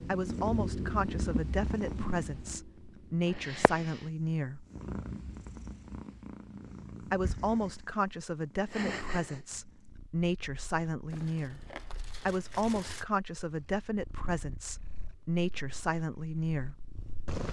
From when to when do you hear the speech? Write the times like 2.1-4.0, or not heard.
0.1-4.7, 7.0-16.8.